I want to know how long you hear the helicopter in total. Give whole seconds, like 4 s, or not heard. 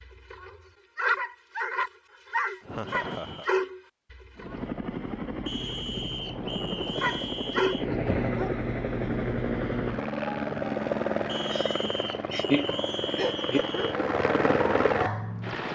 11 s.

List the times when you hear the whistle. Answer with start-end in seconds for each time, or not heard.
2.9-3.5, 5.5-7.8, 11.2-13.9.